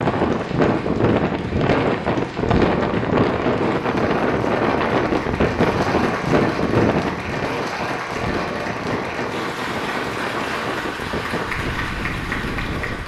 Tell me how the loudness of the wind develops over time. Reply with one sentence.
The volume of the wind goes down.